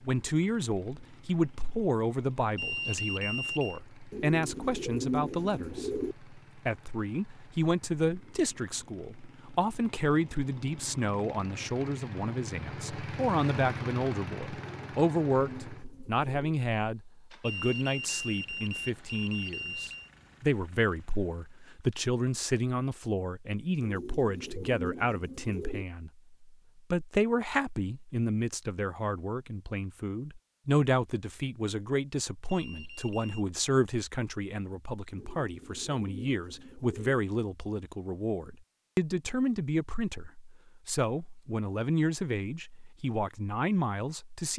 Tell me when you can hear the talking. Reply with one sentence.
The talking can be heard from 0.0 to 44.5 s.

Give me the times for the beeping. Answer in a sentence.
The beeping can be heard from 2.5 to 3.8 s, from 17.4 to 20.1 s and from 32.5 to 33.5 s.